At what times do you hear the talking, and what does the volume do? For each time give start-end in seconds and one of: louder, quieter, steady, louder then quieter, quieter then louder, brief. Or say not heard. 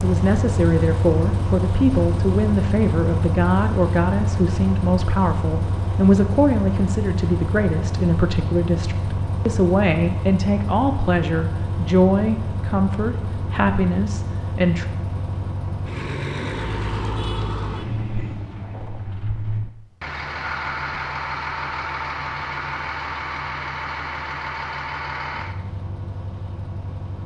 0.0-14.8 steady.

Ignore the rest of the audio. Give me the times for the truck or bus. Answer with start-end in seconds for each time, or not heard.
0.0-27.2.